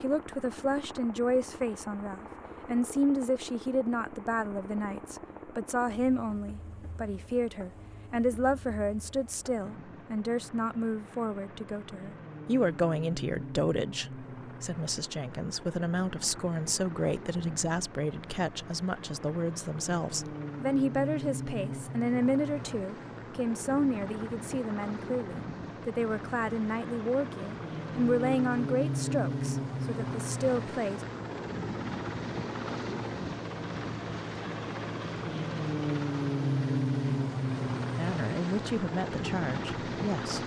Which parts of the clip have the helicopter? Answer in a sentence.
The helicopter can be heard from 0.0 to 40.4 s.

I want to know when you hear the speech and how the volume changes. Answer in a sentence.
You can hear the speech from 0.0 to 31.0 s, at a steady volume; and briefly from 38.0 to 40.4 s.